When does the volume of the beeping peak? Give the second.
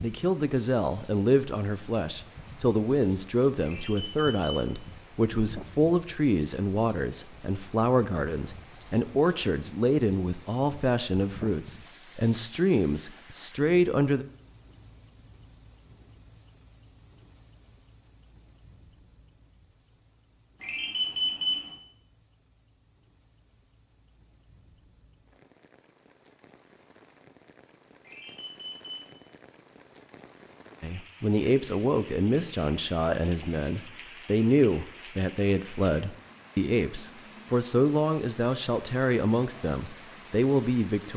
21 s.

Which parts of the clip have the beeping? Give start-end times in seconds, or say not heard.
3.6-4.7, 20.6-21.6, 28.0-29.1.